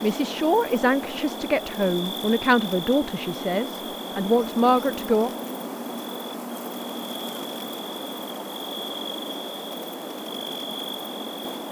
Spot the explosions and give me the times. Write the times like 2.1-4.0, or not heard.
not heard.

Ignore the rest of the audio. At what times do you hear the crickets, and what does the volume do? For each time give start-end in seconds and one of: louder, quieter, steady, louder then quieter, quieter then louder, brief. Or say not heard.
0.0-11.6 steady.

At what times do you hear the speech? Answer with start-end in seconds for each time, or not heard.
0.0-5.3.